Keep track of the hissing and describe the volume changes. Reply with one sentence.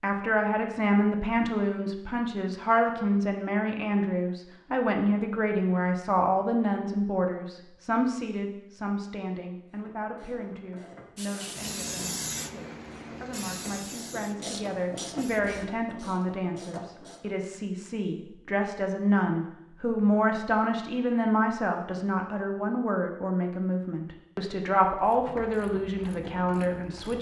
The loudness of the hissing goes down.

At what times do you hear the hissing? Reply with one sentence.
The hissing can be heard from 11.2 to 15.6 s.